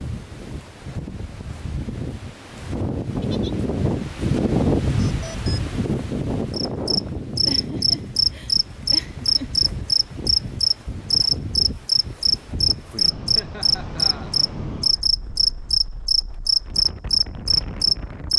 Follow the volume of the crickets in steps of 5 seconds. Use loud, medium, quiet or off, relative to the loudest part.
off, loud, loud, loud.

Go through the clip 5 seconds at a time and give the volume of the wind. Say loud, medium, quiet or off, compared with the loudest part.
loud, loud, medium, quiet.